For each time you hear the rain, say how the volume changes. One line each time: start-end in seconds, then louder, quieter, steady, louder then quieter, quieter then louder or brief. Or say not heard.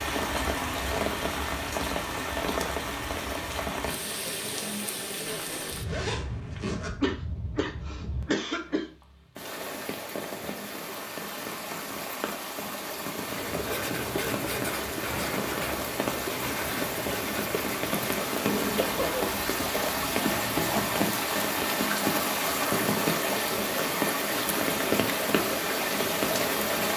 0.0-26.9 quieter then louder.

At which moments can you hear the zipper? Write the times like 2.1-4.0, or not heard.
5.2-6.9.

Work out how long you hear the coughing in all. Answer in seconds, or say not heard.
3 s.